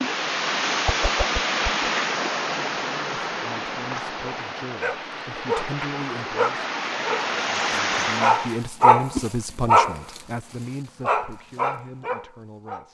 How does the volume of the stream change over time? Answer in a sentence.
The volume of the stream goes down, then up.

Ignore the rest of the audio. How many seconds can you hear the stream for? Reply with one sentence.
The stream can be heard for 9 seconds in total.